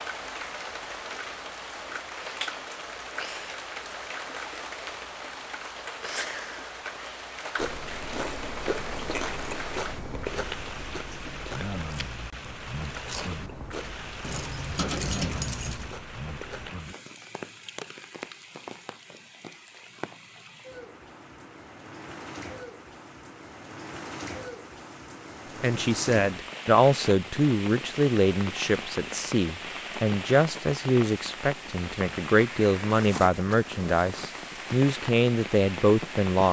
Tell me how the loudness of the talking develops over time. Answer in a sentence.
The loudness of the talking stays about the same.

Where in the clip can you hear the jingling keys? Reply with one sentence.
You can hear the jingling keys from 14.2 to 15.9 s.